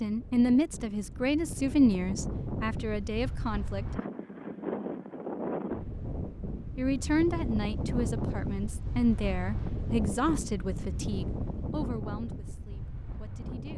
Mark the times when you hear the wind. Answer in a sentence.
The wind can be heard from 0.0 to 13.7 s.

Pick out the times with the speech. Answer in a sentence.
You can hear the speech from 0.0 to 4.0 s and from 6.8 to 13.7 s.